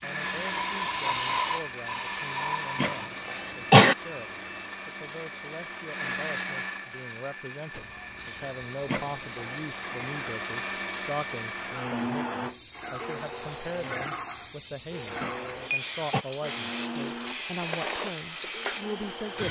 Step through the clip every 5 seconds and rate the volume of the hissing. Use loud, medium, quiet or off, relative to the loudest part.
loud, quiet, medium, loud.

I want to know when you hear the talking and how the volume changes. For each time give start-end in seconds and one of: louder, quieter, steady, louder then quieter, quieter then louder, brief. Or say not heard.
0.0-19.4 louder.